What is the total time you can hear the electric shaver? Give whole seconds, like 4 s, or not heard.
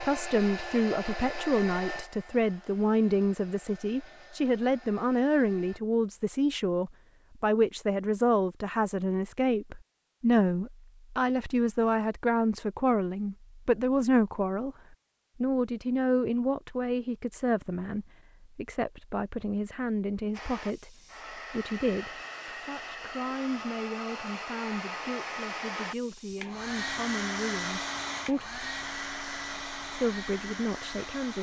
not heard.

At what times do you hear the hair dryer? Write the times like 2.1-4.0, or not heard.
0.0-5.8, 20.3-31.3.